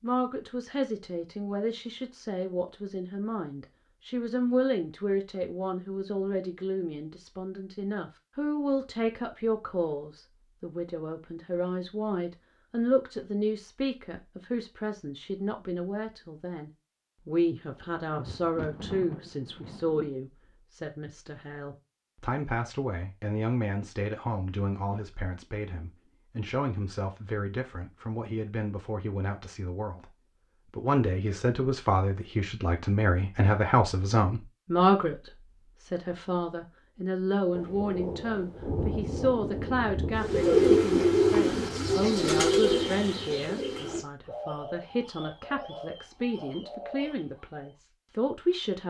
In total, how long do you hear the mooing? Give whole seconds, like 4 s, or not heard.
not heard.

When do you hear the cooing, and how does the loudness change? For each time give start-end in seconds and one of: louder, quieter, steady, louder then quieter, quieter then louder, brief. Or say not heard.
40.2-47.7 quieter.